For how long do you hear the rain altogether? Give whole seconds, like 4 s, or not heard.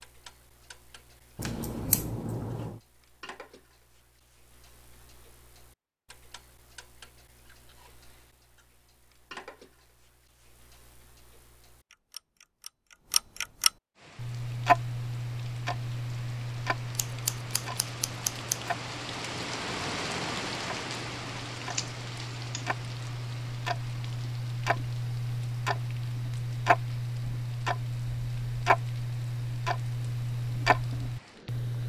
18 s.